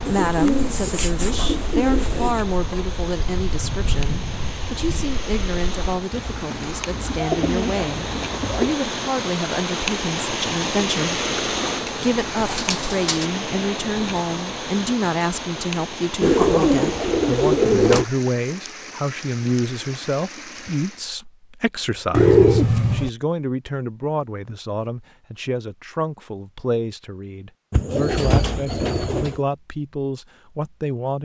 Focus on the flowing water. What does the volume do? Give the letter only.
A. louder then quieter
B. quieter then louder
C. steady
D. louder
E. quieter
A.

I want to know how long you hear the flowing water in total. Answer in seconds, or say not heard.
21 s.